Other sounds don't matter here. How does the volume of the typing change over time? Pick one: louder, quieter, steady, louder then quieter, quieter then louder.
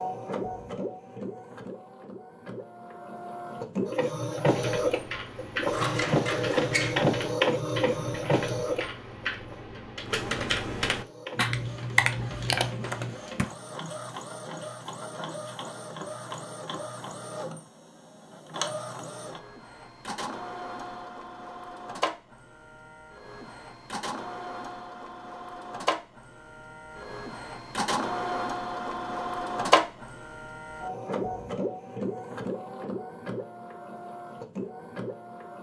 louder.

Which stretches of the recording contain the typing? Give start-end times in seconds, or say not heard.
4.5-13.4.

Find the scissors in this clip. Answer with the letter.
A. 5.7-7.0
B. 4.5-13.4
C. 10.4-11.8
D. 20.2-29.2
A.